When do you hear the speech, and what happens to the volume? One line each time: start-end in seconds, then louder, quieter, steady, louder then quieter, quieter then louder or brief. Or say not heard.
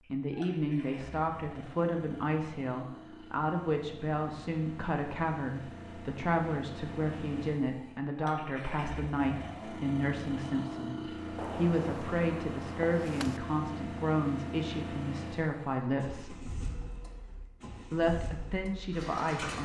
0.1-16.4 steady
17.9-19.5 brief.